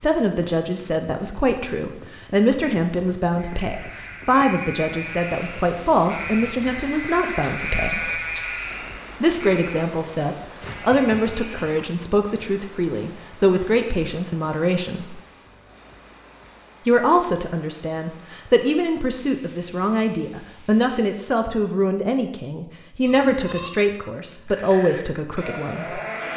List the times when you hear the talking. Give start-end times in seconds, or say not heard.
0.0-8.2, 9.2-15.2, 16.9-26.0.